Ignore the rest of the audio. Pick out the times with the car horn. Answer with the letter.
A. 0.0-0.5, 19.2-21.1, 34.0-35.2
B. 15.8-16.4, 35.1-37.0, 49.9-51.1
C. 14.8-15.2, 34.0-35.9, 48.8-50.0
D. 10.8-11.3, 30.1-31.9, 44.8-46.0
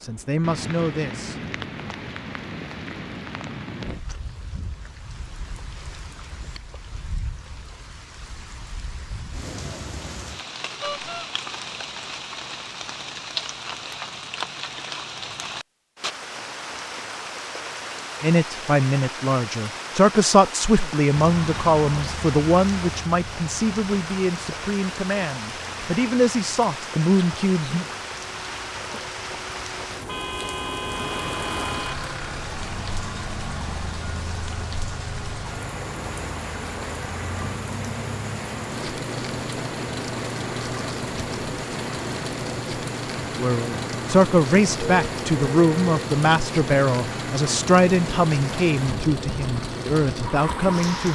D.